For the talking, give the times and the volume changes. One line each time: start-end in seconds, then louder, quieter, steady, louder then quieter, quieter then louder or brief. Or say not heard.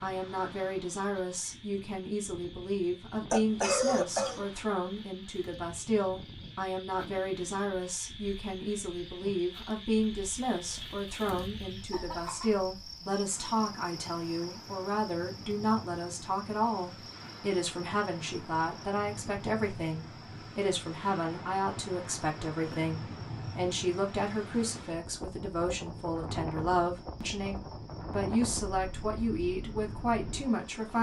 0.0-30.9 steady.